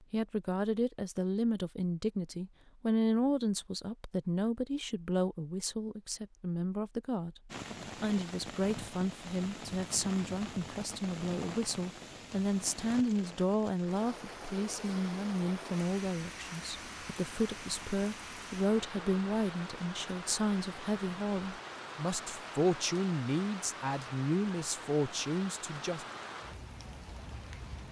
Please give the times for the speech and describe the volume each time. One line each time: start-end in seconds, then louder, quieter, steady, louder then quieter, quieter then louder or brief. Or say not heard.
0.1-26.1 steady.